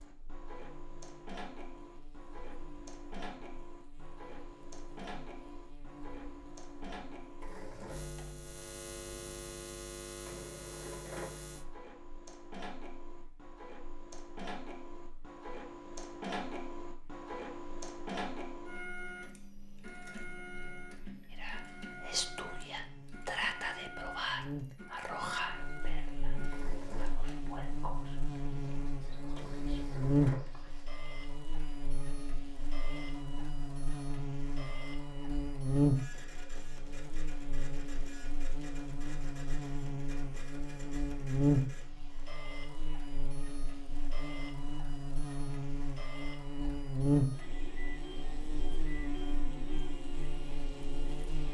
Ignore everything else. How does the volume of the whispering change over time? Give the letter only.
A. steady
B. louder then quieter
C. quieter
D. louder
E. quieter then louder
C.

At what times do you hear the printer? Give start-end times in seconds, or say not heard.
0.0-51.4.